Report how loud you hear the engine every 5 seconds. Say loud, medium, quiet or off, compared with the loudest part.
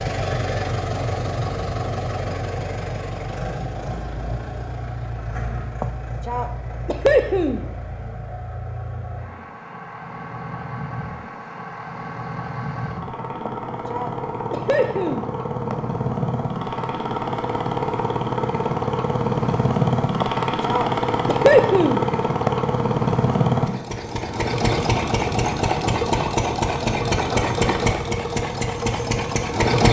medium, quiet, medium, loud, loud, loud.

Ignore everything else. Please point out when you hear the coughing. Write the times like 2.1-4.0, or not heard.
5.8-7.7, 13.4-15.8, 20.2-22.5.